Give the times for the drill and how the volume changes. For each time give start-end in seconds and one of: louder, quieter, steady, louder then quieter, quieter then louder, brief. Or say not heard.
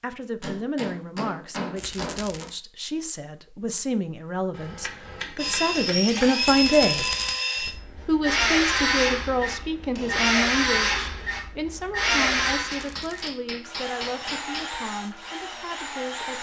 5.3-16.3 quieter.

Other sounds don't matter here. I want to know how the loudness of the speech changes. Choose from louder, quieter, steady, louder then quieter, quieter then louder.
louder then quieter.